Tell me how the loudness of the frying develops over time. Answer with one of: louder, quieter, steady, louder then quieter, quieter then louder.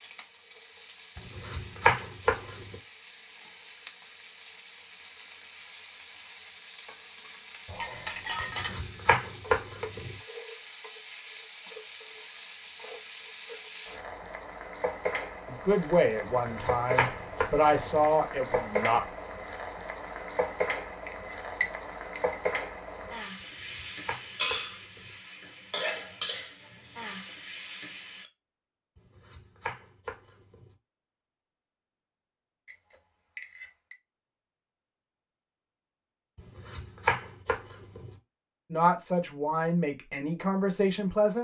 louder.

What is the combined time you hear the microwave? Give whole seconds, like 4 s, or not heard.
not heard.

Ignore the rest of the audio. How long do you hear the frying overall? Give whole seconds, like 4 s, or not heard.
28 s.